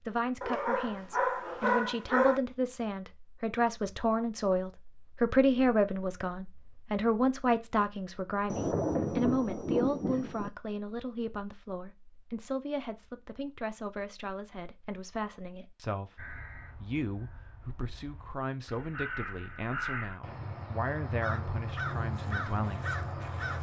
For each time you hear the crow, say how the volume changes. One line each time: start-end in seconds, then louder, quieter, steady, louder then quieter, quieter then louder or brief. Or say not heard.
16.1-23.5 louder.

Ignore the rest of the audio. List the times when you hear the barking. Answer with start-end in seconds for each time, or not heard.
0.4-2.4.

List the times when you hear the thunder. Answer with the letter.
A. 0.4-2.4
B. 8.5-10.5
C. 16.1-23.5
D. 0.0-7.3
B.